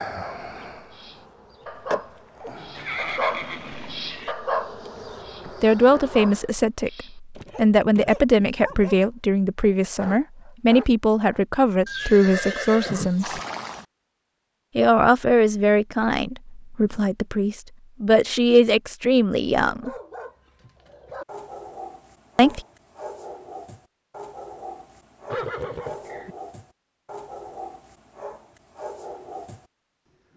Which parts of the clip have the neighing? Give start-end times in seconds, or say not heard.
2.8-4.3, 11.8-13.8, 25.3-26.4.